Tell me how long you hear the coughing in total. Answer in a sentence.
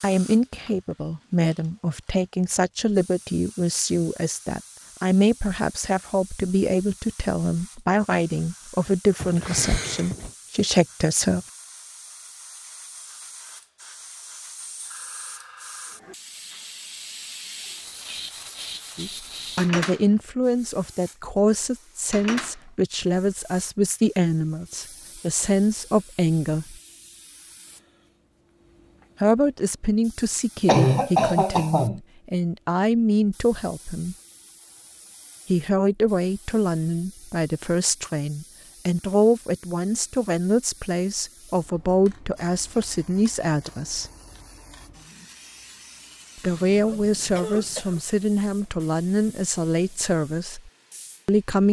The coughing can be heard for 4 seconds in total.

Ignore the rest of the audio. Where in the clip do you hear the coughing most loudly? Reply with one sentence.
The volume of the coughing peaks at 31 seconds.